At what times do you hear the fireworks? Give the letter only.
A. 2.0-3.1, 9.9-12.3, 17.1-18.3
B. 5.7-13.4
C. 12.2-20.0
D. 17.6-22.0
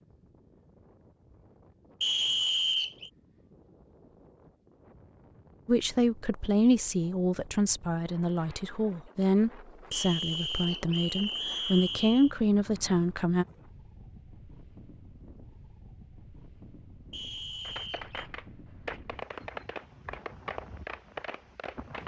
D.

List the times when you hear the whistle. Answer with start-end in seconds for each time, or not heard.
2.0-3.1, 9.9-12.3, 17.1-18.3.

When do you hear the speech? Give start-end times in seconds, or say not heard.
5.7-13.4.